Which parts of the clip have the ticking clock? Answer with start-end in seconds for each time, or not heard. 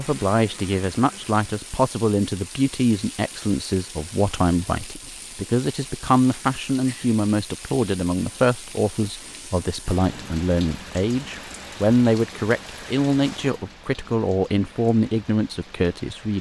not heard.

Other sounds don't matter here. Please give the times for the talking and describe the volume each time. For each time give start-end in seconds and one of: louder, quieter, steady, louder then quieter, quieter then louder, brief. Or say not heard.
0.0-16.3 steady.